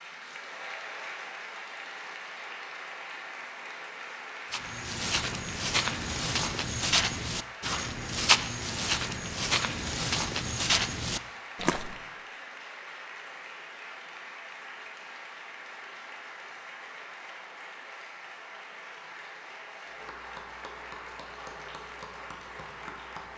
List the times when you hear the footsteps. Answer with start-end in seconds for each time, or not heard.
4.5-12.0.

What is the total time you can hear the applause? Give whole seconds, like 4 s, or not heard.
23 s.